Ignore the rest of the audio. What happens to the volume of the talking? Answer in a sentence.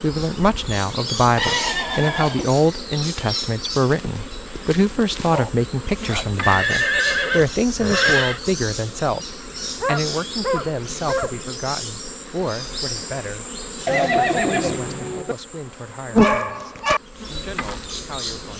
The loudness of the talking goes down.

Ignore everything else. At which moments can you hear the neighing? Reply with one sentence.
You can hear the neighing from 1.4 to 2.5 s, from 6.4 to 8.4 s and from 13.8 to 15.3 s.